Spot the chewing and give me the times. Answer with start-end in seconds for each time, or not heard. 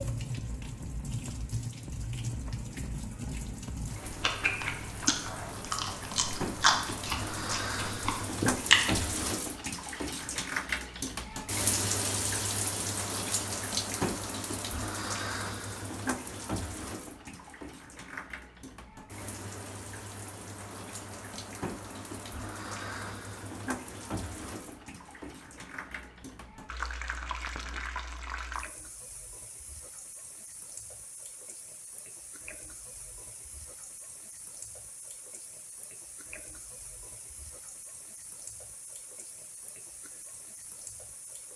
4.0-9.1.